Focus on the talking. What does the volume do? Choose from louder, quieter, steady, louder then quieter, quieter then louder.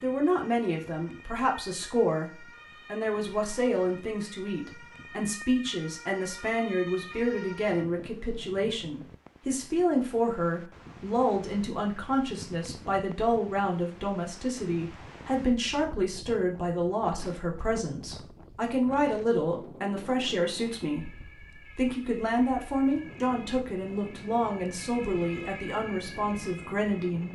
steady.